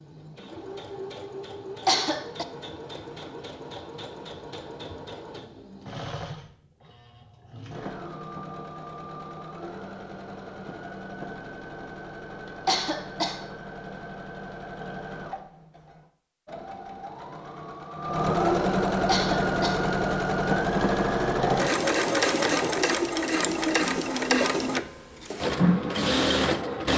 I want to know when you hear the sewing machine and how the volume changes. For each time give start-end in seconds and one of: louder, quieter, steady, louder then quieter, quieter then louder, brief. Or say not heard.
0.0-26.9 louder.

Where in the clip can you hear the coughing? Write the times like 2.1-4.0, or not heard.
1.9-2.5, 12.7-13.4, 19.1-19.9.